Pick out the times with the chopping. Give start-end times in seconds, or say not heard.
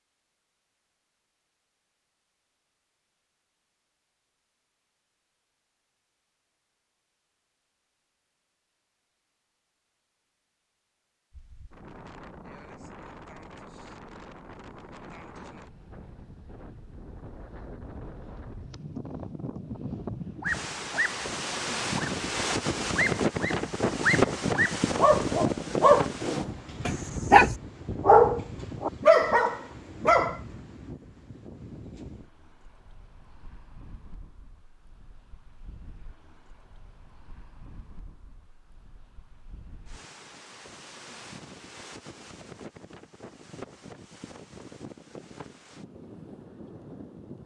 not heard.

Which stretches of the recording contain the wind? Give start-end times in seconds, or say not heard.
11.3-47.4.